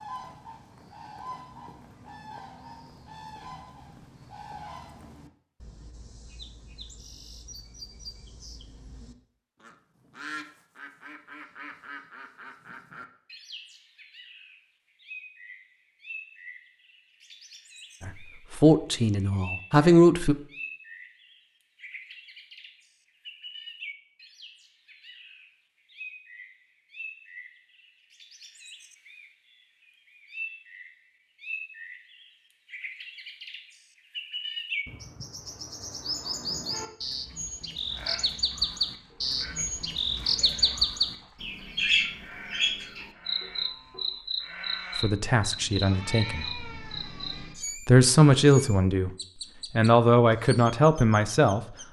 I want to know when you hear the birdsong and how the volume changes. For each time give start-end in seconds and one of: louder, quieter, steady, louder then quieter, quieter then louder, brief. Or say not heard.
0.0-51.8 louder.